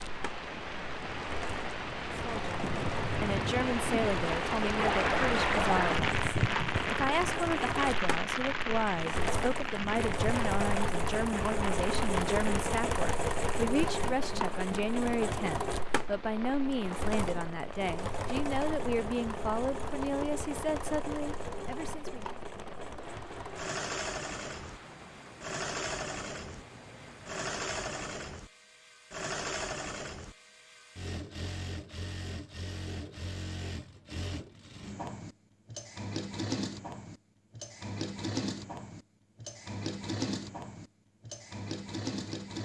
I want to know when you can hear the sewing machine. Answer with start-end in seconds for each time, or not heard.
0.0-42.6.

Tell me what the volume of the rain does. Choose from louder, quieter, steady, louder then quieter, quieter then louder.
quieter.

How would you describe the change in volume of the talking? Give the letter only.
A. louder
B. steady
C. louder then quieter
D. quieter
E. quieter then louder
B.